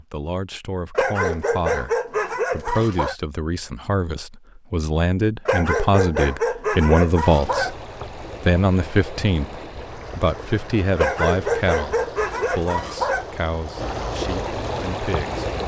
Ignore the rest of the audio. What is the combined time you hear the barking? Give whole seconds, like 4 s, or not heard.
7 s.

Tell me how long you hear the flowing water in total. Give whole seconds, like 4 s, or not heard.
8 s.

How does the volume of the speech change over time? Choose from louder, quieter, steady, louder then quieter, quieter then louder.
louder then quieter.